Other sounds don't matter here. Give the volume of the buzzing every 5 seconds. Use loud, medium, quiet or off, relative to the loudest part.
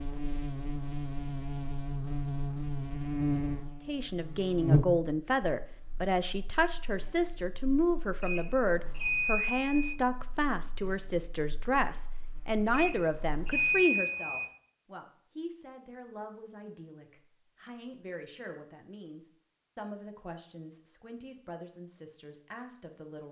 loud, quiet, quiet, off, off.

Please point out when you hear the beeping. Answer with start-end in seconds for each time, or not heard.
8.2-9.9, 12.7-14.4.